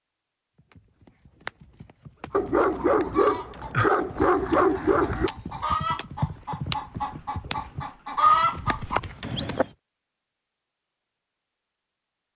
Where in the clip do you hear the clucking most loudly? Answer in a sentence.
The volume of the clucking peaks at 8 seconds.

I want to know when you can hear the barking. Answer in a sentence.
You can hear the barking from 2.3 to 5.3 s.